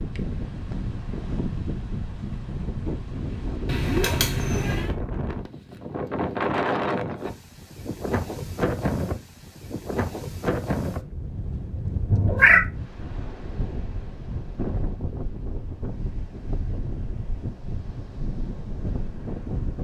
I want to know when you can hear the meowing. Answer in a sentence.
The meowing can be heard from 3.6 to 4.9 s and from 12.1 to 12.7 s.